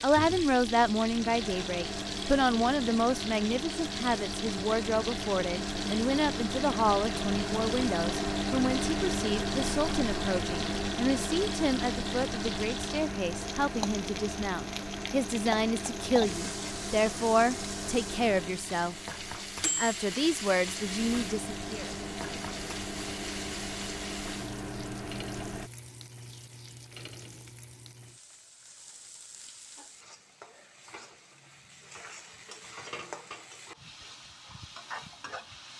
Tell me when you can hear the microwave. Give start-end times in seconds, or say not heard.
0.0-25.7.